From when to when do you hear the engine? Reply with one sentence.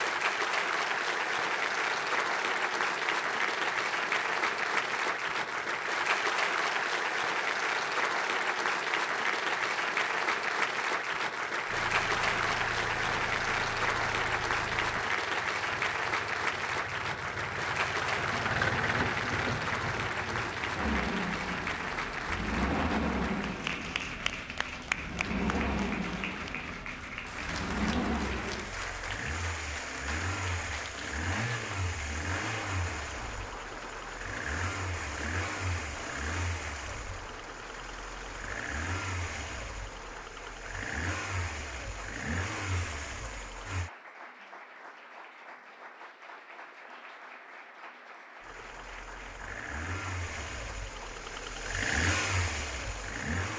The engine can be heard from 11.7 to 43.9 s and from 48.4 to 53.5 s.